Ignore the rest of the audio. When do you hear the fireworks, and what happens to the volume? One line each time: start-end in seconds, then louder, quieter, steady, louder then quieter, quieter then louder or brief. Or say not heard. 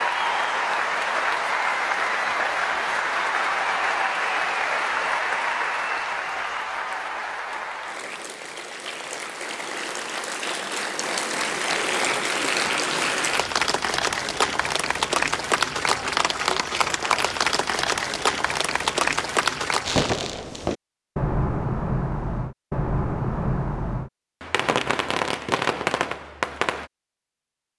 19.9-26.9 steady.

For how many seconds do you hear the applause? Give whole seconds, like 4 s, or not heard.
20 s.